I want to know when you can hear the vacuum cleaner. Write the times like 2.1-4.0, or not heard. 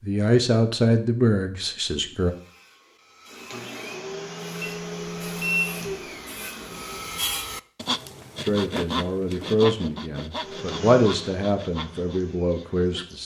3.2-7.0, 10.3-13.2.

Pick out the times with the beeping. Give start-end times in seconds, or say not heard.
4.6-5.8.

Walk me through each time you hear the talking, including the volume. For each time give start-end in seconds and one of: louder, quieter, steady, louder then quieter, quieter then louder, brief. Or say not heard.
0.0-2.4 brief
8.4-13.2 louder then quieter.